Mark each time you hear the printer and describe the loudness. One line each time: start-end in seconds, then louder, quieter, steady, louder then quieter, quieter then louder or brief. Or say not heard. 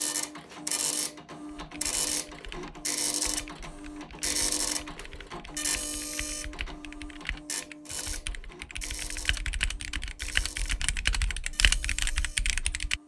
0.0-13.0 quieter.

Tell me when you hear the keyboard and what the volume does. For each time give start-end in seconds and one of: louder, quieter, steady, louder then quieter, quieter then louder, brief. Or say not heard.
1.4-13.0 louder.